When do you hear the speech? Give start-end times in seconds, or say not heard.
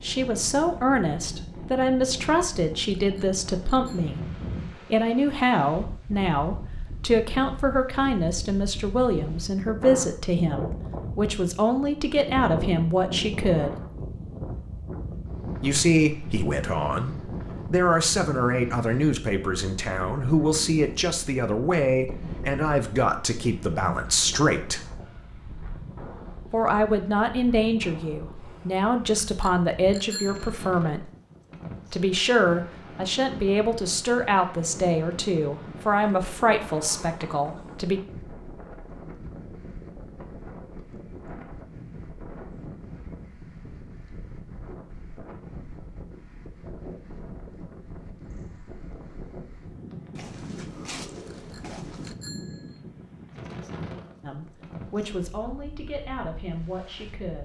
0.0-13.8, 15.6-24.8, 26.5-31.1, 31.9-38.0, 54.2-57.4.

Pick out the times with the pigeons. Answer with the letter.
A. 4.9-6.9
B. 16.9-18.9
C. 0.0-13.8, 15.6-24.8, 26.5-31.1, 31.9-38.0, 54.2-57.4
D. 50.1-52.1
D.